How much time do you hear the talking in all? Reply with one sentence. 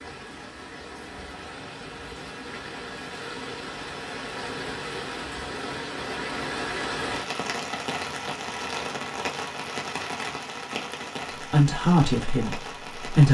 The talking can be heard for 2 seconds in total.